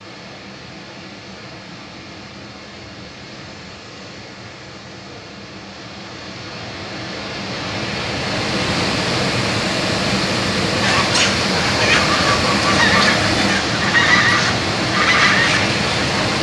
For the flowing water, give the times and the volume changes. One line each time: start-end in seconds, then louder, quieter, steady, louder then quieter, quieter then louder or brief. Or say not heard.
0.0-16.3 louder.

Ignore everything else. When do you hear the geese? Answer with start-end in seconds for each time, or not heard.
10.8-16.3.